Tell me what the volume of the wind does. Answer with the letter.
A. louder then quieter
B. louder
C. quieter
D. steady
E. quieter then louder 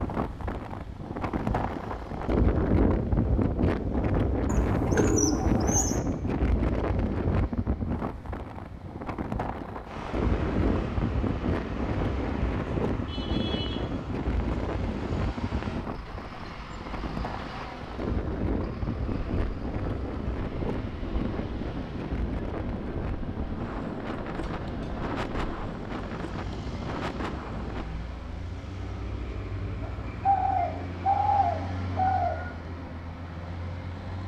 C.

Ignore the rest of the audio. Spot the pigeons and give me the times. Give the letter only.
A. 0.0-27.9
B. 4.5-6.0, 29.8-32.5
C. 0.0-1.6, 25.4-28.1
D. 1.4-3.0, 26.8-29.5
B.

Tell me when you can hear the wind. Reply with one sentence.
The wind can be heard from 0.0 to 27.9 s.